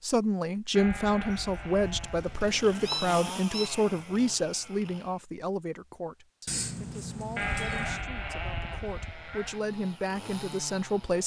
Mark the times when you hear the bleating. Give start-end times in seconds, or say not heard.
0.8-3.0, 7.3-9.6.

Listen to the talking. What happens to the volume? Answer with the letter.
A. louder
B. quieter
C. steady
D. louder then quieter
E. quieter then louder
E.